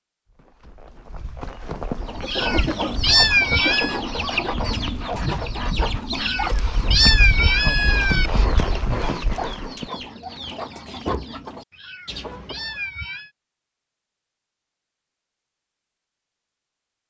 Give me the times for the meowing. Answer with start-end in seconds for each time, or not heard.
2.2-4.0, 6.2-8.3, 11.7-13.3.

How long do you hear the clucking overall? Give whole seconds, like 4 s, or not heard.
11 s.